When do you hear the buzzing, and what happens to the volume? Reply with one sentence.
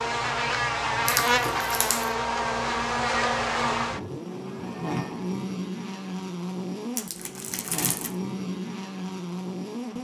You can hear the buzzing from 0.0 to 10.0 s, getting quieter.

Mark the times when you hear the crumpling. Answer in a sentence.
The crumpling can be heard from 1.1 to 2.1 s and from 7.0 to 8.2 s.